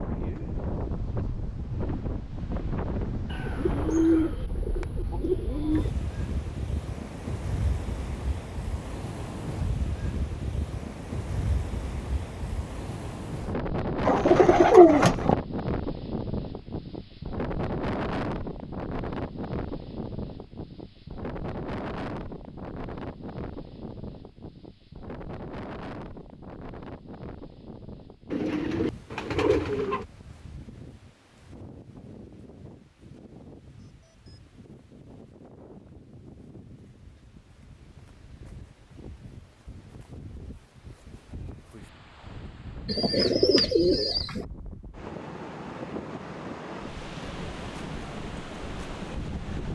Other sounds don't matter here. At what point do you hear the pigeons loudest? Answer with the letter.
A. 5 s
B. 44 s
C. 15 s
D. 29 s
C.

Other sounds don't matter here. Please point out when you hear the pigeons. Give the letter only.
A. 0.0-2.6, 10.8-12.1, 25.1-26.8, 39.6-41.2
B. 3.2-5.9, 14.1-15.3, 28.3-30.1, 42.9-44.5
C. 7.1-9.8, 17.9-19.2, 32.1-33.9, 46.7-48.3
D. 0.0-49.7
B.